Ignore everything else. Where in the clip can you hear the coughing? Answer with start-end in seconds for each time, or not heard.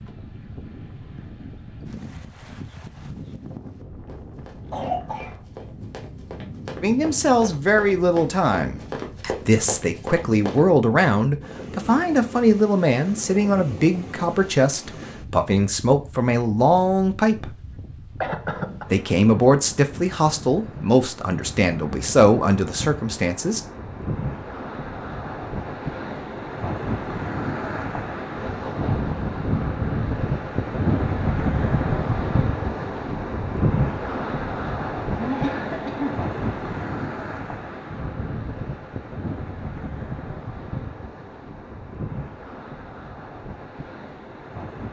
4.7-5.4, 18.2-18.9, 35.1-36.3.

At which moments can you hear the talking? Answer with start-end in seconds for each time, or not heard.
6.8-17.6, 18.9-23.6.